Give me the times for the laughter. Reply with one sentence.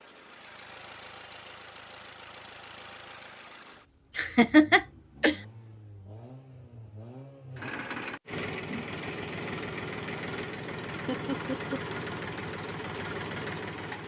You can hear the laughter from 4.2 to 5.3 s and from 11.1 to 11.8 s.